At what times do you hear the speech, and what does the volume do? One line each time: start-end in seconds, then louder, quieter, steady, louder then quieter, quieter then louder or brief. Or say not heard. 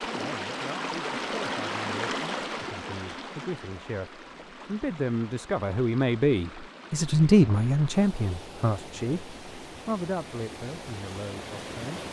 0.0-12.0 louder then quieter.